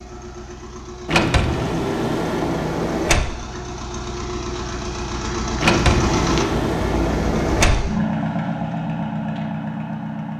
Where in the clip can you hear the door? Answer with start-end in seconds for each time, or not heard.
1.1-3.3, 5.6-7.9.